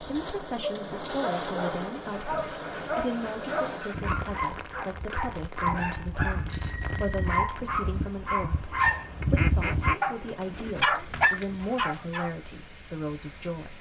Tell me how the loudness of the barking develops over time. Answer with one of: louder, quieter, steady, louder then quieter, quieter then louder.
louder.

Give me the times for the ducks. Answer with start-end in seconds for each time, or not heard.
2.1-4.2, 9.2-11.4.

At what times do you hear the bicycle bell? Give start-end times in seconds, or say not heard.
6.5-7.5.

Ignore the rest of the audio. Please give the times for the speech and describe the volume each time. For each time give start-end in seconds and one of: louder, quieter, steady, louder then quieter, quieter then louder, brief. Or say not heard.
0.0-13.7 steady.